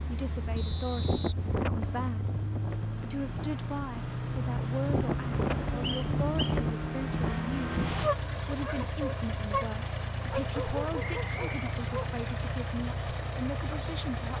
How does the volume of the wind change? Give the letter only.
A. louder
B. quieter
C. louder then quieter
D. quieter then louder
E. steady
D.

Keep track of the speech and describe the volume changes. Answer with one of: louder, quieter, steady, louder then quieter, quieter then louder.
steady.